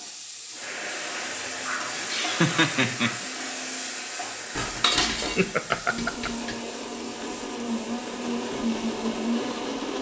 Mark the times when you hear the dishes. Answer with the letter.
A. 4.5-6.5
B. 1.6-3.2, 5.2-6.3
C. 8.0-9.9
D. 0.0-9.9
A.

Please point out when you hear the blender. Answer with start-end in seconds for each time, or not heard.
0.0-9.9.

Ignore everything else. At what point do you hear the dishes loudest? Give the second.
5 s.